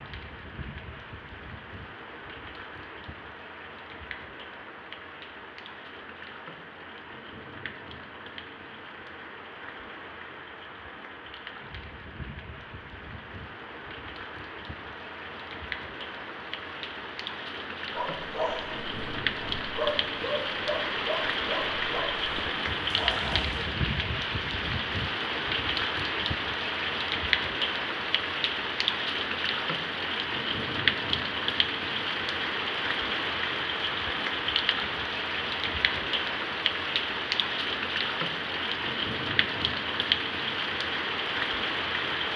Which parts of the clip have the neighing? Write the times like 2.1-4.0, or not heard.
not heard.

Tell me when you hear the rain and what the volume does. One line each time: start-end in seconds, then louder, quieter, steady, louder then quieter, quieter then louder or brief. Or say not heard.
0.0-42.3 louder.